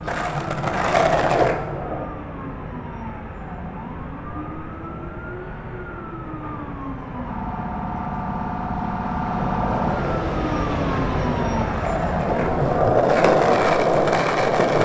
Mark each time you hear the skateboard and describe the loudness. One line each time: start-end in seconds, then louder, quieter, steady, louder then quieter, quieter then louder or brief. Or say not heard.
0.0-2.0 brief
9.2-14.7 louder.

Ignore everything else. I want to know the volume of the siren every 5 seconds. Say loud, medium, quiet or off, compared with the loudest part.
medium, loud, loud.